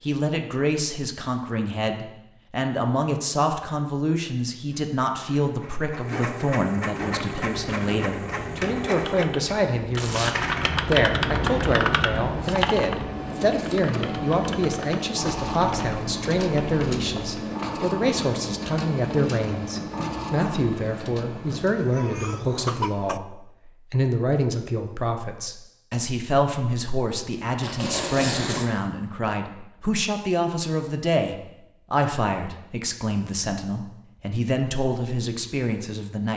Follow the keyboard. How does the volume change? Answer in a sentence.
The loudness of the keyboard goes up, then down.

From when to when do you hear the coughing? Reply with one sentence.
The coughing can be heard from 21.4 to 23.2 s.